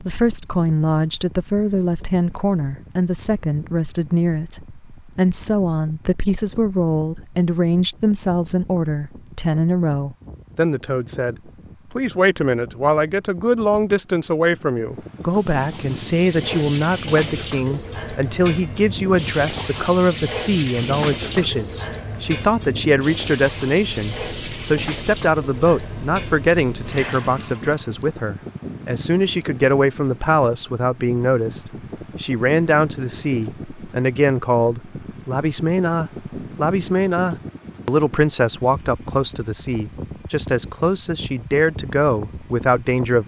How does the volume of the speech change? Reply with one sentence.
The loudness of the speech stays about the same.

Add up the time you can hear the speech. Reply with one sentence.
The speech can be heard for 43 seconds in total.